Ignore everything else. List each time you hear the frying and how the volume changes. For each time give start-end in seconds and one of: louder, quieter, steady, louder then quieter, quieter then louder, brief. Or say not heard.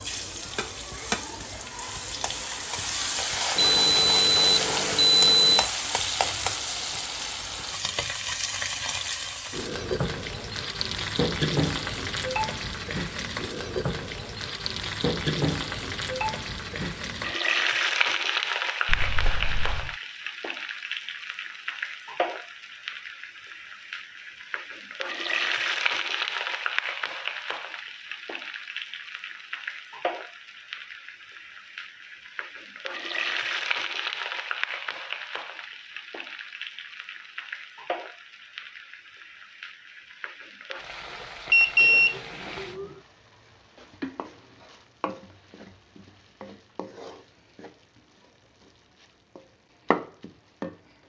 0.0-51.0 quieter.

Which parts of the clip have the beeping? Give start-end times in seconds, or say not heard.
3.5-5.7, 18.9-19.9, 41.5-42.9.